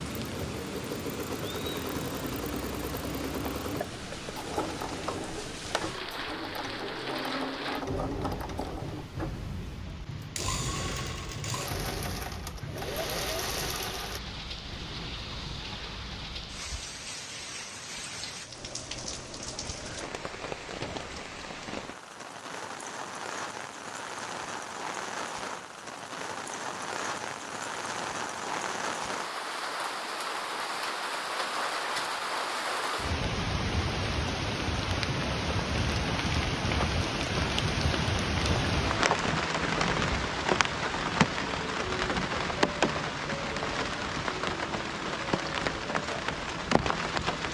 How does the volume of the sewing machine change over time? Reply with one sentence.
The volume of the sewing machine stays about the same.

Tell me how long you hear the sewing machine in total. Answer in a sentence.
The sewing machine can be heard for 14 seconds in total.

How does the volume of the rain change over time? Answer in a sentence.
The volume of the rain goes up.